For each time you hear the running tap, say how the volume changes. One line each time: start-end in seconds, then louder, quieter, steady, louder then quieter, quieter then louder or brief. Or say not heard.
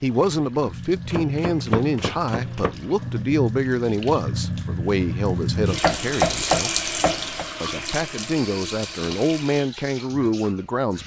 0.0-11.0 louder then quieter.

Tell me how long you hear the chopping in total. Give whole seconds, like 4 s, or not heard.
3 s.